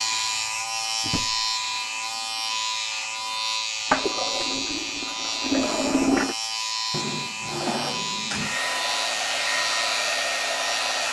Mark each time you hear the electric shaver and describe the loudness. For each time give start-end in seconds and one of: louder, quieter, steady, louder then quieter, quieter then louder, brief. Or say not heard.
0.0-11.0 steady.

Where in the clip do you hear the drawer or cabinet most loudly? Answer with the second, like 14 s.
8 s.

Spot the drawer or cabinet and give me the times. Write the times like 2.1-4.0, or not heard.
1.0-1.4, 6.9-8.6.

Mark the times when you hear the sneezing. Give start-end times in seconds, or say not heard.
not heard.